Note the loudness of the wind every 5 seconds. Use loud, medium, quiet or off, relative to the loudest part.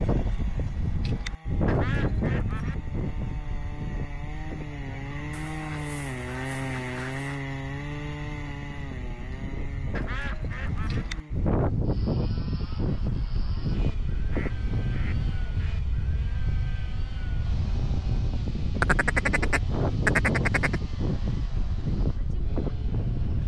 loud, medium, loud, loud, loud.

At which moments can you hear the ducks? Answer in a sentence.
You can hear the ducks from 1.6 to 2.8 s, from 5.3 to 7.5 s, from 9.9 to 11.1 s, from 14.3 to 15.8 s and from 18.8 to 20.8 s.